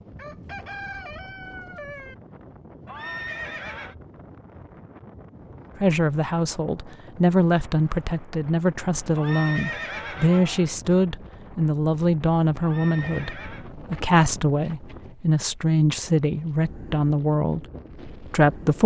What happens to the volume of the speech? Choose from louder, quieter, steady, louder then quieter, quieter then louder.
steady.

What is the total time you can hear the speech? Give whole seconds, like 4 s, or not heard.
13 s.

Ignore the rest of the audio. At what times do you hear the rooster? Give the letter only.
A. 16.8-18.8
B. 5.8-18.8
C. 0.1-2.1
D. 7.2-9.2
C.